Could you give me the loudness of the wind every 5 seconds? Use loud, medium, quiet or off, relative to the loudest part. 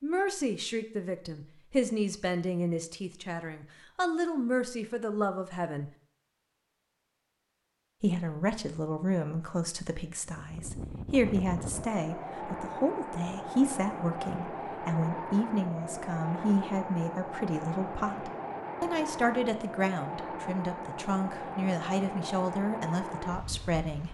off, off, loud, loud, loud.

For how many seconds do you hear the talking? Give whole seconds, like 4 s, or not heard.
22 s.